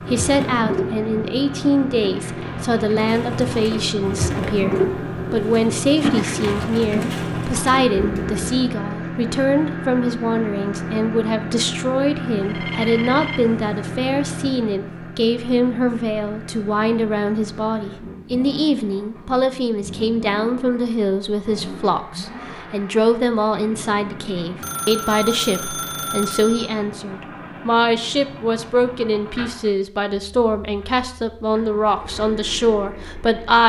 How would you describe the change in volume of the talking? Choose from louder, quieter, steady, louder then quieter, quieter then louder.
steady.